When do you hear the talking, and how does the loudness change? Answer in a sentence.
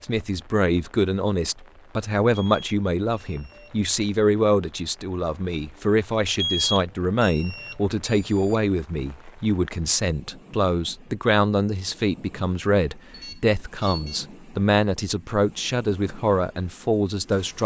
You can hear the talking from 0.0 to 17.6 s, at a steady volume.